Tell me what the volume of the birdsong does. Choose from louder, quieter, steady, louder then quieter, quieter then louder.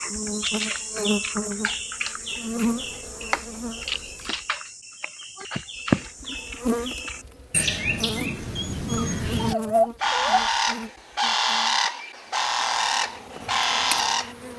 louder.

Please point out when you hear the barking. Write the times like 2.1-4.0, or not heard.
8.6-10.4.